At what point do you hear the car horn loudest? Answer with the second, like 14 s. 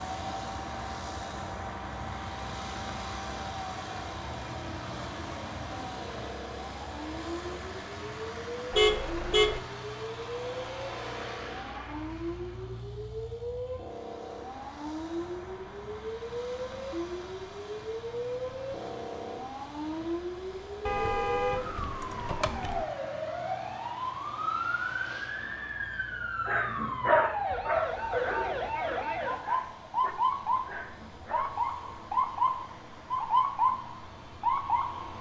9 s.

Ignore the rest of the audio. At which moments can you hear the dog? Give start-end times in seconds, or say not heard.
26.1-31.6.